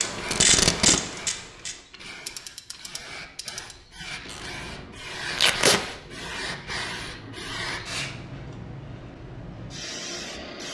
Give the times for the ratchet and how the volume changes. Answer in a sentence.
You can hear the ratchet from 0.0 to 4.8 s, getting quieter.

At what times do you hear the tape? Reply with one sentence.
The tape can be heard from 0.2 to 1.0 s and from 5.3 to 5.8 s.